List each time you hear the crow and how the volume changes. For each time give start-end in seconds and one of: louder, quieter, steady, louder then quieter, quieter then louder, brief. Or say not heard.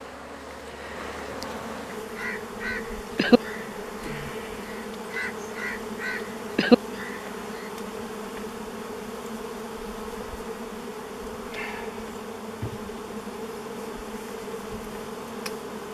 2.1-7.7 quieter then louder.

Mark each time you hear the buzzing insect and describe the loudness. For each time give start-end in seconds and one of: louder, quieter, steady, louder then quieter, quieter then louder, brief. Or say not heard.
0.0-15.8 steady.